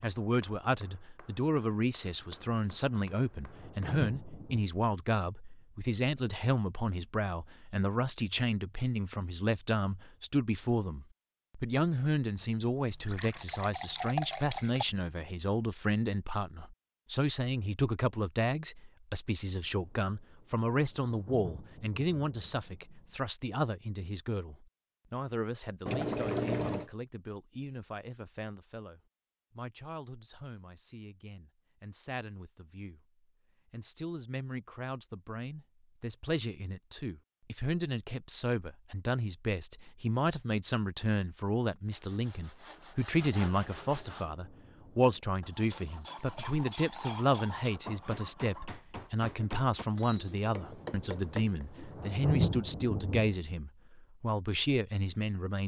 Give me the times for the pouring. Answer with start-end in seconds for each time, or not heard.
12.8-14.8, 25.9-26.9, 46.0-47.6.